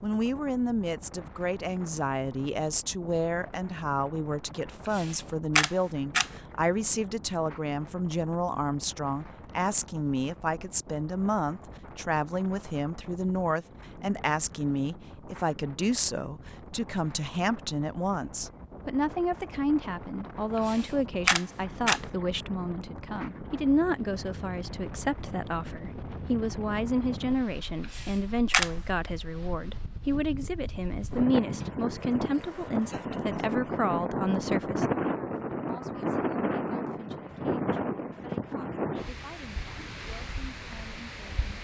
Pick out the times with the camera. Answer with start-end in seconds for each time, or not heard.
4.8-6.3, 20.6-22.0, 27.8-28.7.